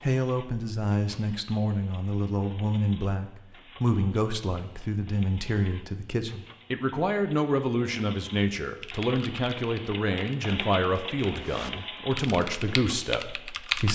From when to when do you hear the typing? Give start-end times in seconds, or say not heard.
8.7-13.9.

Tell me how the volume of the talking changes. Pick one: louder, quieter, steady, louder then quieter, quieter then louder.
steady.